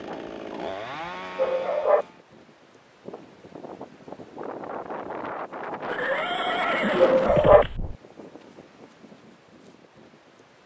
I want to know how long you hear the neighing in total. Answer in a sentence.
You can hear the neighing for 2 seconds altogether.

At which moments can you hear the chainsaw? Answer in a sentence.
The chainsaw can be heard from 0.0 to 2.2 s.